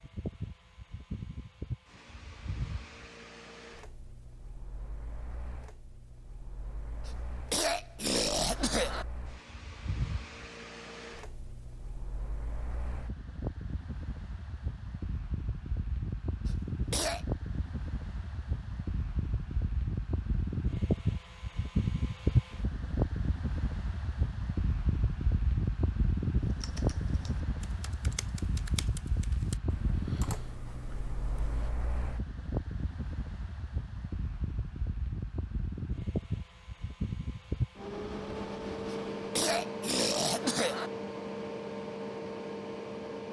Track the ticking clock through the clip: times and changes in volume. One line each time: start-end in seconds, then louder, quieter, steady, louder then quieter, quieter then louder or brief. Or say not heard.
not heard.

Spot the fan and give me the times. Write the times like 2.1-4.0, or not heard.
0.0-43.2.